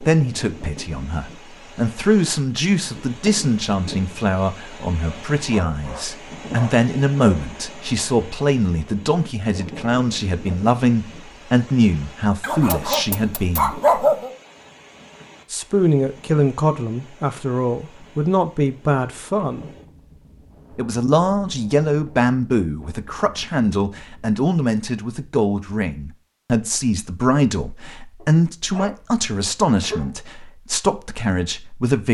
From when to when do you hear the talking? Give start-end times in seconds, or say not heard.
0.0-13.8, 15.5-19.7, 20.8-32.0.